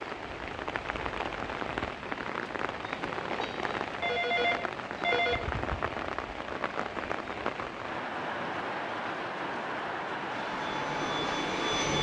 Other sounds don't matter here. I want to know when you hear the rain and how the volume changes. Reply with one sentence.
You can hear the rain from 0.0 to 11.9 s, at a steady volume.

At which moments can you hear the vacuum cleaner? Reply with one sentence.
The vacuum cleaner can be heard from 10.3 to 11.9 s.